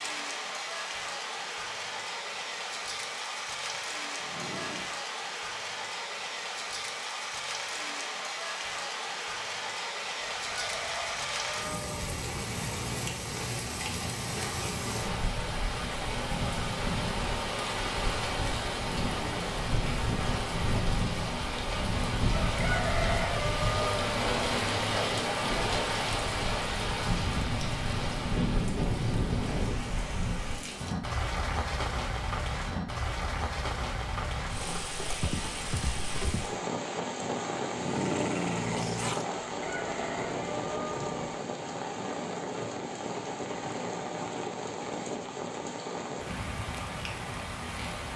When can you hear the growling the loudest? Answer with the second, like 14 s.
38 s.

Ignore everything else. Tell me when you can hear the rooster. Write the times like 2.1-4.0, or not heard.
10.2-11.9, 22.4-24.1, 39.4-41.1.